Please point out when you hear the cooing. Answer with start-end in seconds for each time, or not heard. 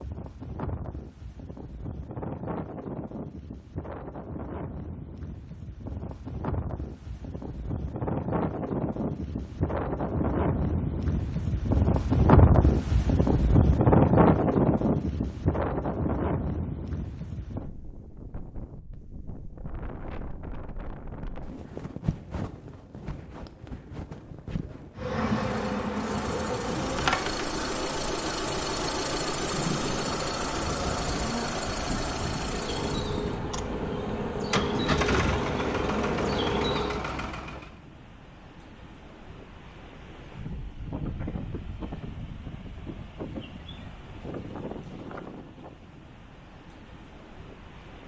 not heard.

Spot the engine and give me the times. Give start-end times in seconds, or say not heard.
25.5-37.8.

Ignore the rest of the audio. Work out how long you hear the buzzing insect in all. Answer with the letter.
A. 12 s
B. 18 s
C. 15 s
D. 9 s
A.